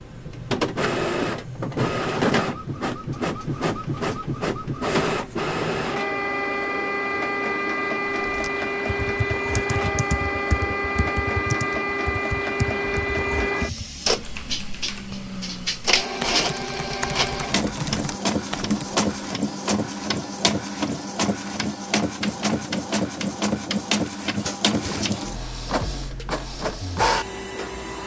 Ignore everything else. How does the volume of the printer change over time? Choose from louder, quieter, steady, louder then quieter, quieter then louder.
steady.